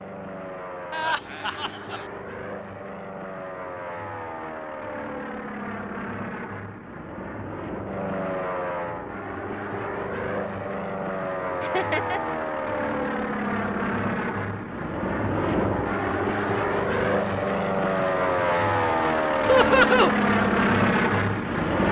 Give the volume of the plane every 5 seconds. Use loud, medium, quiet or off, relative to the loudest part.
quiet, medium, medium, loud, loud.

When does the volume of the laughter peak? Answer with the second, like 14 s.
20 s.